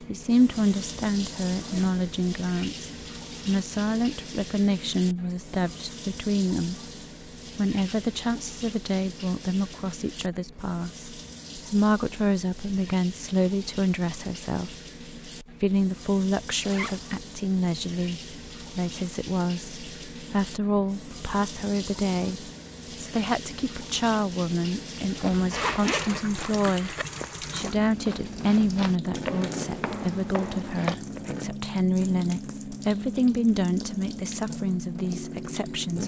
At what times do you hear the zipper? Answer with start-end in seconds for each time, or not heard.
1.5-2.0, 16.6-17.1, 25.5-27.1.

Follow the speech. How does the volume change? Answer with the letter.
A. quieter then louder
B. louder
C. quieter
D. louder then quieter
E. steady
E.